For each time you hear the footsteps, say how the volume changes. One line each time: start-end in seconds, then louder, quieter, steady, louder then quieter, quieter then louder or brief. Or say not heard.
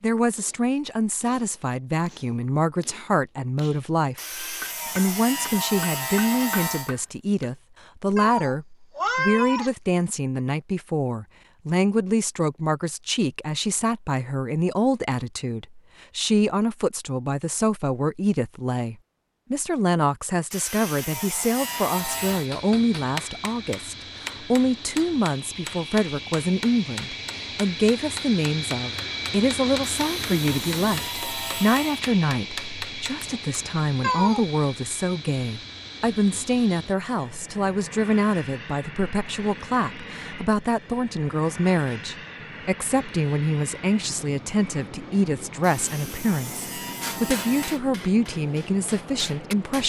not heard.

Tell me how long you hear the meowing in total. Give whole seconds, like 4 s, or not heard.
2 s.